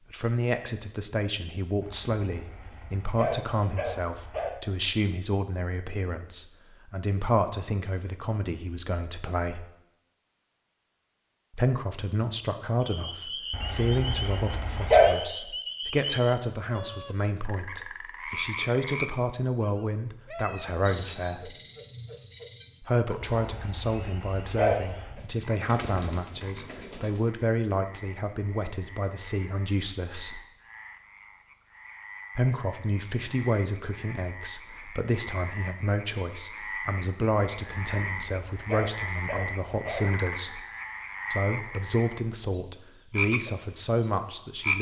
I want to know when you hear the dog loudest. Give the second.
15 s.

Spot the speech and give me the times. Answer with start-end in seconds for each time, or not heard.
0.1-9.7, 11.5-21.6, 22.8-30.4, 32.4-40.6, 41.3-44.7.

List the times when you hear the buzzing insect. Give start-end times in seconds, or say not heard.
not heard.